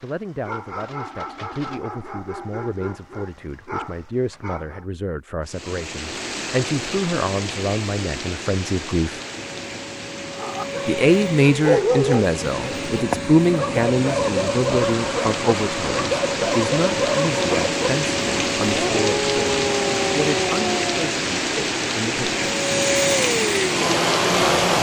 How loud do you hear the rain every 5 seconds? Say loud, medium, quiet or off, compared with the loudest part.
off, medium, medium, loud, loud.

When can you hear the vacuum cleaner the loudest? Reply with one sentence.
The loudest moment of the vacuum cleaner is at 24 seconds.